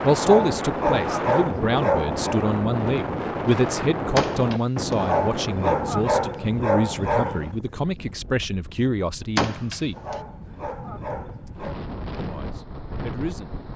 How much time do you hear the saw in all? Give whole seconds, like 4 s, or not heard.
not heard.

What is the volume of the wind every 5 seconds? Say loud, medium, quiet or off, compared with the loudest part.
loud, medium, medium.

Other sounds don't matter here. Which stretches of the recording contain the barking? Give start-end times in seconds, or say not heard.
0.1-2.4, 5.0-7.5, 9.9-11.8.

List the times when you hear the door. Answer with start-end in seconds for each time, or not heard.
4.2-5.0, 9.3-10.2.